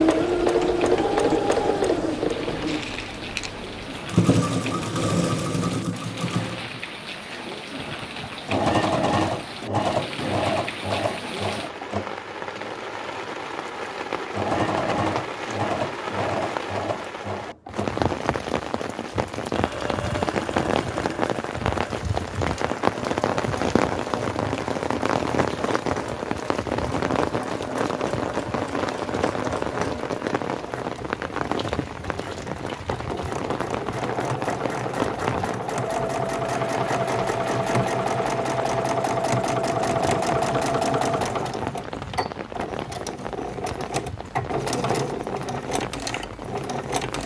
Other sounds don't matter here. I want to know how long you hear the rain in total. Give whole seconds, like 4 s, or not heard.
47 s.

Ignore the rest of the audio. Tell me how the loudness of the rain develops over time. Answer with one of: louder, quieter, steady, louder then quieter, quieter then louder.
louder then quieter.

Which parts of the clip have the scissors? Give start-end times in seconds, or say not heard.
not heard.